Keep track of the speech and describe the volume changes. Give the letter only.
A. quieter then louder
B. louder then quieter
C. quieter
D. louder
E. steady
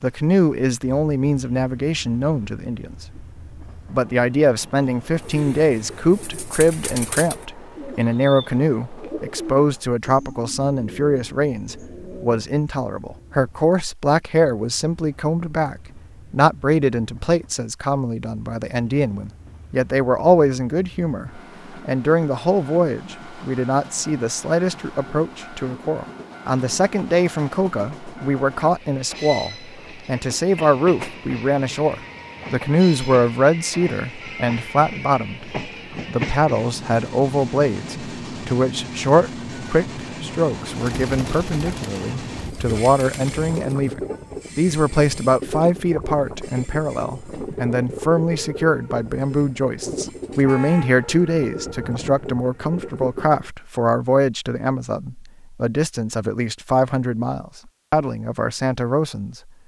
E.